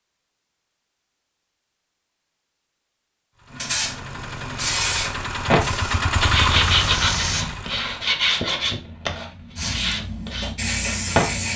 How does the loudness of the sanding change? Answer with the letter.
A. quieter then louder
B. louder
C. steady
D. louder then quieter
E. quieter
E.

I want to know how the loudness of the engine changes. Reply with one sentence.
The volume of the engine goes up, then down.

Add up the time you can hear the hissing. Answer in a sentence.
The hissing can be heard for 6 seconds in total.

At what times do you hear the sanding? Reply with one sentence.
The sanding can be heard from 5.5 to 11.5 s.